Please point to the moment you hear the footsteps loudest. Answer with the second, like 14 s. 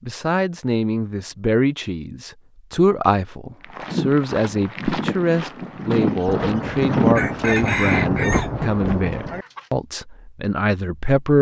7 s.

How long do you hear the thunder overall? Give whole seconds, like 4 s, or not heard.
3 s.